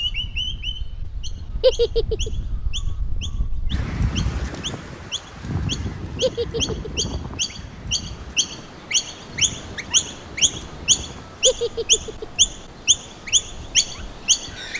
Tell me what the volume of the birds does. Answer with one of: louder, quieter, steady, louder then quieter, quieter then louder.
louder.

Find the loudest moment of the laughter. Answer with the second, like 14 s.
2 s.